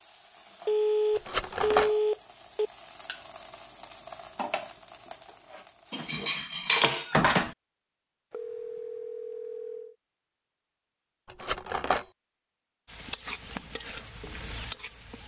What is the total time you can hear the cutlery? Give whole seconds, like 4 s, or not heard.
3 s.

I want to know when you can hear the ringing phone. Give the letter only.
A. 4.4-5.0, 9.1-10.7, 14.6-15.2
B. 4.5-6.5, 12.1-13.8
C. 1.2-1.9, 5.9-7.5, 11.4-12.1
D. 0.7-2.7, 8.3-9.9
D.